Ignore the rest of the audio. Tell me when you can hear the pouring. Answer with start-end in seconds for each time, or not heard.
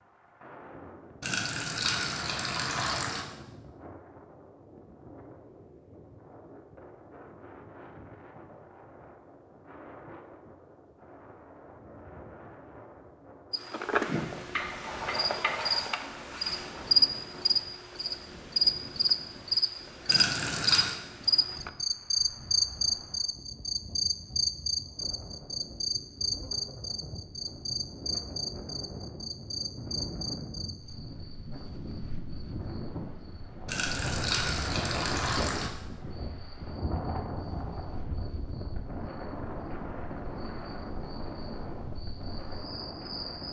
1.2-3.2, 20.1-20.9, 33.6-35.7.